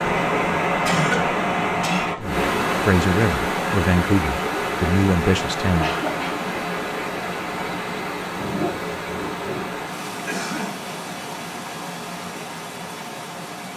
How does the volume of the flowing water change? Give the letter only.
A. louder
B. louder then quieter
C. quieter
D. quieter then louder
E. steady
C.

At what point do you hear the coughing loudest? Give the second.
1 s.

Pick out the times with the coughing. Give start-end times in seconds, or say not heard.
0.8-2.1, 5.6-6.5, 10.2-10.8.